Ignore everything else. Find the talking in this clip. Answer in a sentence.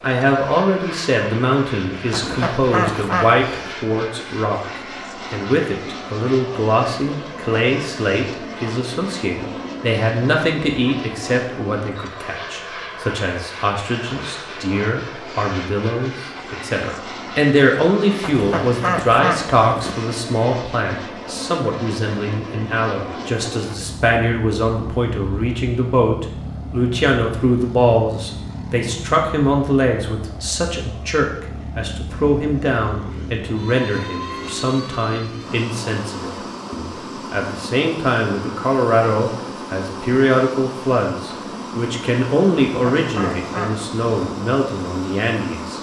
The talking can be heard from 0.0 to 4.7 s and from 5.3 to 45.7 s.